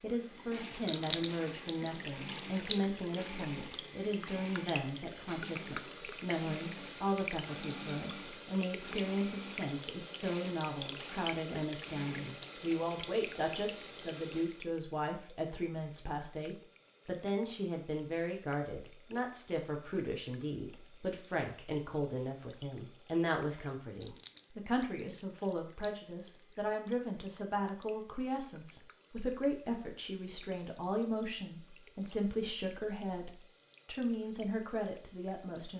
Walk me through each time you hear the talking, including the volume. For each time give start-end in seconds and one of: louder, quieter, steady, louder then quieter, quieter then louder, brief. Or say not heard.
0.0-35.7 steady.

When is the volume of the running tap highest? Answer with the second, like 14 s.
1 s.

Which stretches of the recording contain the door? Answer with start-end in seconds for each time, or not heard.
not heard.